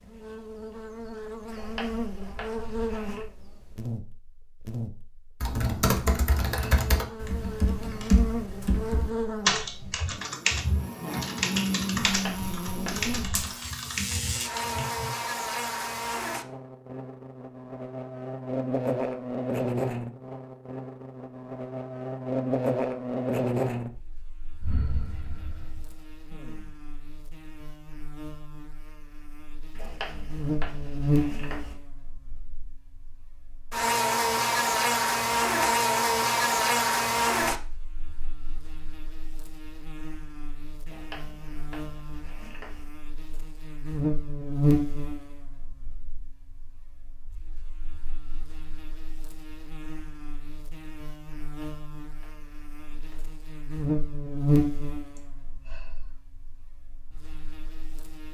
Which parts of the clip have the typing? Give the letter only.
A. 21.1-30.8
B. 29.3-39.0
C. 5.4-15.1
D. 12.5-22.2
C.